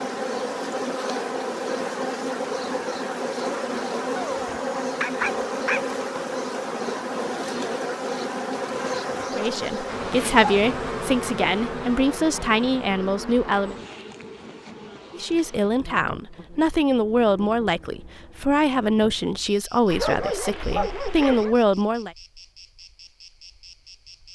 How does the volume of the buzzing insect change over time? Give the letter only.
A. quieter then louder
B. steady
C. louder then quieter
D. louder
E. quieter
E.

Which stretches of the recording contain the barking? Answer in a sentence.
You can hear the barking from 4.2 to 5.8 s and from 19.9 to 21.6 s.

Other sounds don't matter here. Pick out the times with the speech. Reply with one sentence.
The speech can be heard from 9.3 to 13.8 s and from 15.1 to 22.1 s.